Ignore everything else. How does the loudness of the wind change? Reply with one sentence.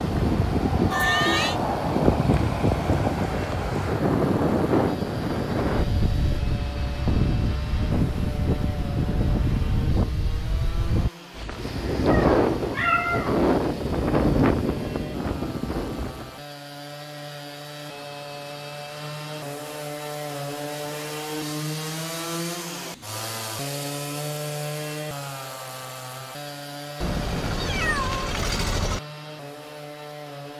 The loudness of the wind stays about the same.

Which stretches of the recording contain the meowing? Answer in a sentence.
You can hear the meowing from 0.9 to 1.6 s, from 12.1 to 13.3 s and from 27.0 to 29.0 s.